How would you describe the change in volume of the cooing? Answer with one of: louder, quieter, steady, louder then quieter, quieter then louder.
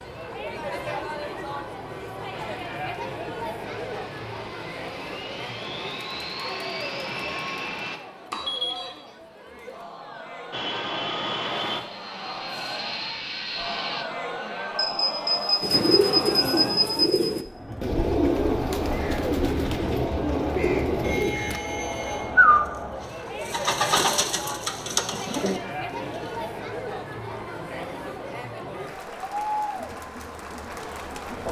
louder then quieter.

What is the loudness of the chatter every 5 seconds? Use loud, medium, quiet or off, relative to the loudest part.
loud, medium, loud, loud, loud, loud, loud.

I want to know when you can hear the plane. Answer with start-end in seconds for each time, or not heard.
2.3-8.0, 10.5-14.1.